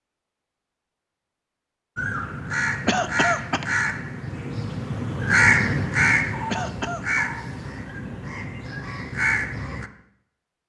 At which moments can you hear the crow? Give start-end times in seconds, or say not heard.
1.9-9.9.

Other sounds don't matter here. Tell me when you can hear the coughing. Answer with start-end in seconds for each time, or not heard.
2.9-3.7, 6.5-7.0.